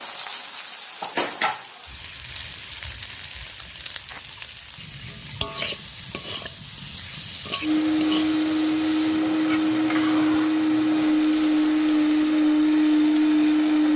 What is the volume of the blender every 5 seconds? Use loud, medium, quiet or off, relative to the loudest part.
off, loud, loud.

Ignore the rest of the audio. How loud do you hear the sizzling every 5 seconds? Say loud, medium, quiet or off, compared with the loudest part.
loud, loud, medium.